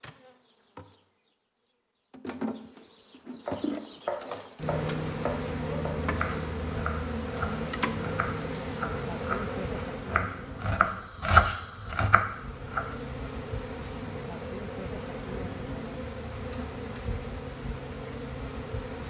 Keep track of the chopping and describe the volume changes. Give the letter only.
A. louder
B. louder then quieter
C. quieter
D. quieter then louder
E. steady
A.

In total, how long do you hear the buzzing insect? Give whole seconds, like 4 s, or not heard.
19 s.